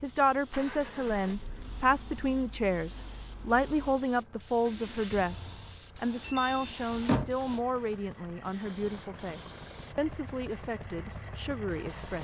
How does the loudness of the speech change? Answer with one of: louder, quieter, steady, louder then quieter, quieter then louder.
quieter.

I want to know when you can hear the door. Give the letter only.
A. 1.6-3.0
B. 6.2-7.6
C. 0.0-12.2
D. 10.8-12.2
B.